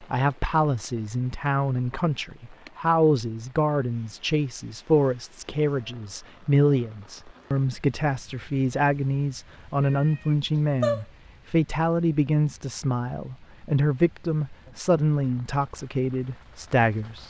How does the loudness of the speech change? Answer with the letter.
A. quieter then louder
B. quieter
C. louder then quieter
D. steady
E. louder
D.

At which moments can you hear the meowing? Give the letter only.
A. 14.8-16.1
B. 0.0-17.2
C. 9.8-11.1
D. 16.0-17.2
C.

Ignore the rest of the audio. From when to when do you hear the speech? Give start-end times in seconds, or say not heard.
0.0-17.2.